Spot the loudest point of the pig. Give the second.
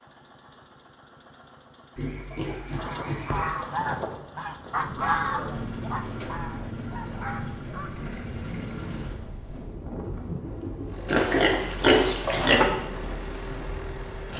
12 s.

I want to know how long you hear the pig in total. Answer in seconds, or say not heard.
3 s.